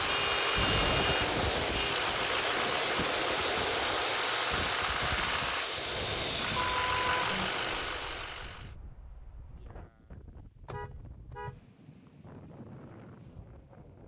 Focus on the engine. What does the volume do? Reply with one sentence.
The loudness of the engine stays about the same.